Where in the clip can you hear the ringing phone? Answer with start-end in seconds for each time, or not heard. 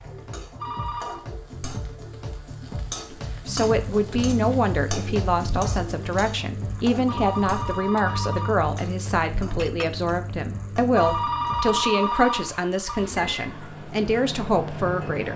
0.6-1.2, 7.0-8.6, 10.9-13.1.